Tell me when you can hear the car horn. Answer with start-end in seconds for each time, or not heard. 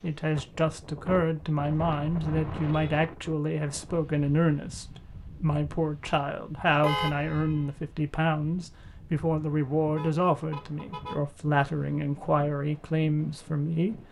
1.6-3.0, 6.8-7.7, 9.9-11.2.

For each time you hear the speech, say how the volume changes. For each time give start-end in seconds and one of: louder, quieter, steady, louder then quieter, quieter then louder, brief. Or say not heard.
0.0-14.0 steady.